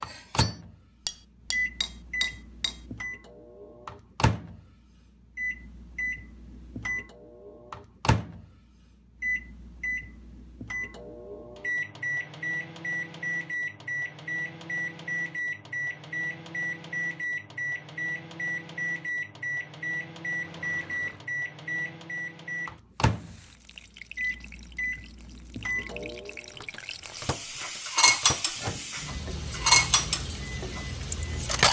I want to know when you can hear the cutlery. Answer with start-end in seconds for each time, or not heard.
0.0-2.8, 27.6-31.6.